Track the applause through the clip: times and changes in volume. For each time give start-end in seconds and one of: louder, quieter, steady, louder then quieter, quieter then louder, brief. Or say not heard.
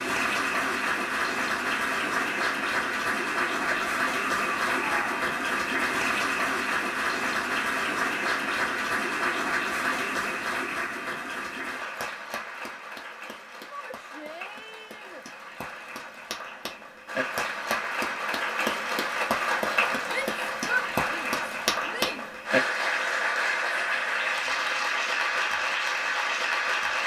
0.0-27.0 quieter then louder.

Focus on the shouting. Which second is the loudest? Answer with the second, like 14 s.
21 s.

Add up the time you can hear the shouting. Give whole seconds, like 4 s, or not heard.
5 s.